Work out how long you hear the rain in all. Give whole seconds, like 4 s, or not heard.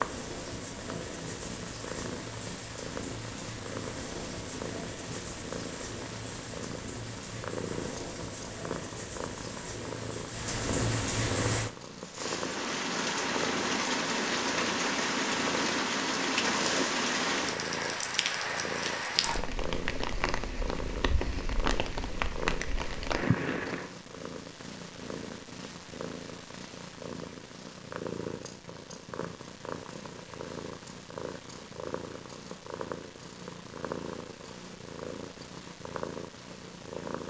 24 s.